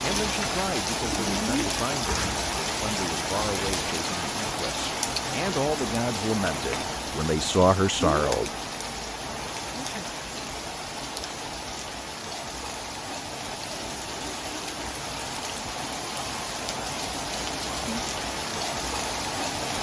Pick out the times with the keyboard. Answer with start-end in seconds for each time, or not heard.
not heard.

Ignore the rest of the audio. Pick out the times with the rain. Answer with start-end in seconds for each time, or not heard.
0.0-19.7.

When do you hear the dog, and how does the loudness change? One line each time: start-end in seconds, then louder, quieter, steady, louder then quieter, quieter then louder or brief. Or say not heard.
not heard.